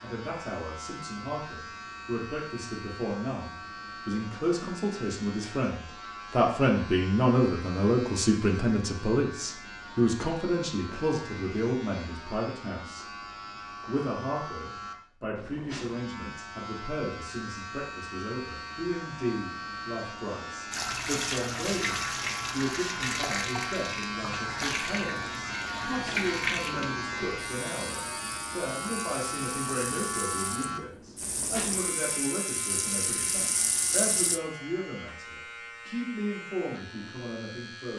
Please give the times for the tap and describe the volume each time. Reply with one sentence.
The tap can be heard from 20.7 to 34.4 s, getting quieter then louder.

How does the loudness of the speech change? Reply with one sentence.
The volume of the speech goes down.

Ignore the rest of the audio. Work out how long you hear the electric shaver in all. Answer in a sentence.
The electric shaver can be heard for 38 seconds in total.